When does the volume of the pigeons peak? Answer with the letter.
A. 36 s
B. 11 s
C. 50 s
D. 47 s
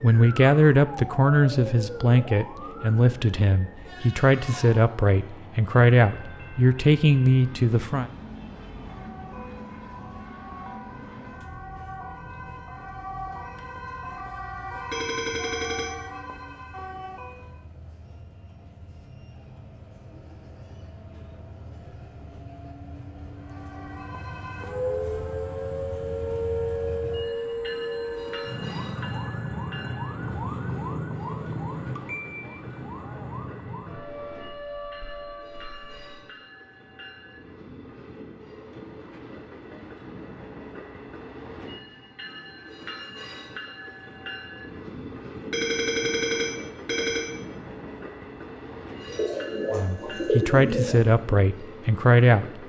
C.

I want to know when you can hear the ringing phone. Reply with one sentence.
You can hear the ringing phone from 14.9 to 15.9 s and from 45.5 to 47.2 s.